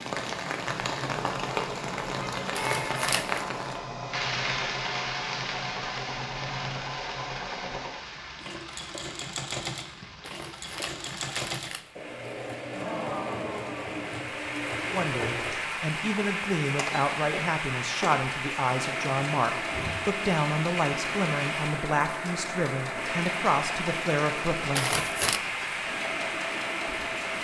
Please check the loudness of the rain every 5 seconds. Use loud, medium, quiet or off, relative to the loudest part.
loud, medium, medium, loud, loud, loud.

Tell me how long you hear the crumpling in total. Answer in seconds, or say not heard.
3 s.